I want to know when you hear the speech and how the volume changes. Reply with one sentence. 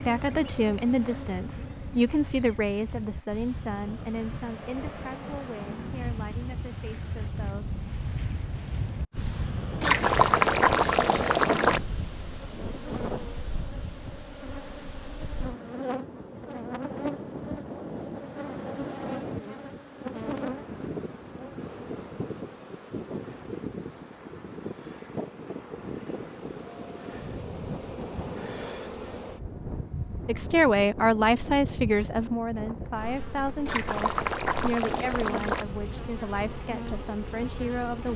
You can hear the speech from 0.1 to 7.7 s, getting quieter; and from 30.2 to 38.1 s, getting quieter.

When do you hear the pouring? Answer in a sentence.
The pouring can be heard from 9.8 to 11.8 s and from 33.6 to 35.6 s.